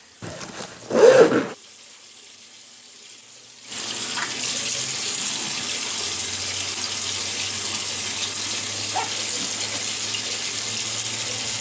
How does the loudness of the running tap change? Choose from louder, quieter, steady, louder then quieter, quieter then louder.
louder.